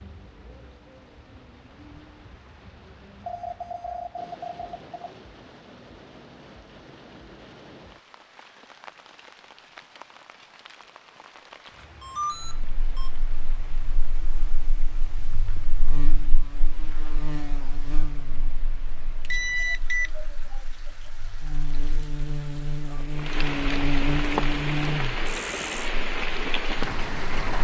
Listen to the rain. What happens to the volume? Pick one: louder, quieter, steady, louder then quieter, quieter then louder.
louder.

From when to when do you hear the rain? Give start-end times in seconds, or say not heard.
0.0-27.5.